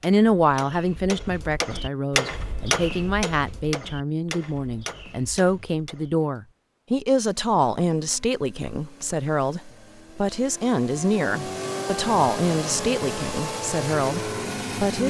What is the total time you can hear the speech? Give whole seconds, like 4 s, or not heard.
15 s.